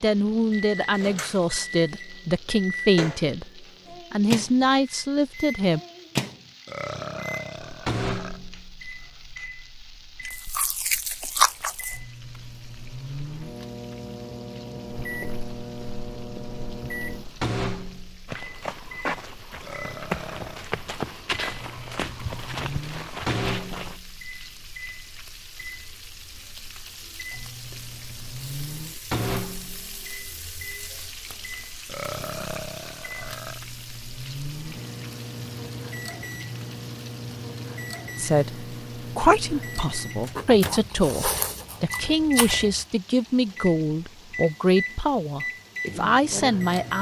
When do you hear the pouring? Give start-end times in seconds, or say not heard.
not heard.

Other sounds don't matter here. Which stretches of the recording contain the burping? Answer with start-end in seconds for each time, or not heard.
6.7-8.4, 19.6-20.7, 31.9-33.6.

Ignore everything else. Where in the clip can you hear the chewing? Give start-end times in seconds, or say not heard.
10.2-12.0, 40.4-42.9.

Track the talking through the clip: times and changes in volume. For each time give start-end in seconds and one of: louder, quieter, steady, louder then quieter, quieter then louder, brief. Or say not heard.
0.0-5.8 steady
38.1-46.9 steady.